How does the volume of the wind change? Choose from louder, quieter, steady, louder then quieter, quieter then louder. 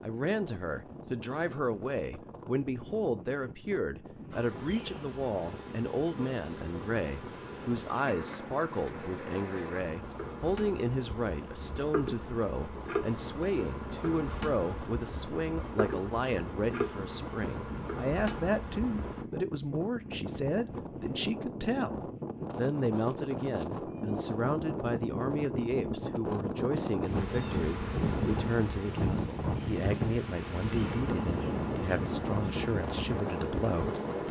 louder.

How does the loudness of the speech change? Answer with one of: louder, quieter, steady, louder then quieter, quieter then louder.
steady.